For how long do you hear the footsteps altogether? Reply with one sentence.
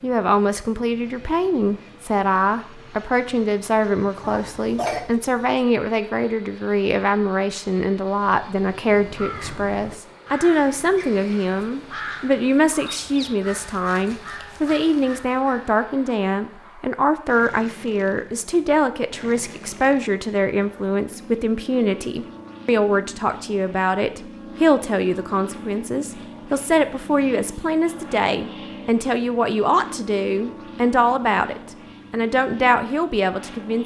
The footsteps can't be heard in this clip.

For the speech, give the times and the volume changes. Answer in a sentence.
The speech can be heard from 0.0 to 33.8 s, at a steady volume.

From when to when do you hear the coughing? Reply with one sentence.
The coughing can be heard from 4.2 to 5.0 s.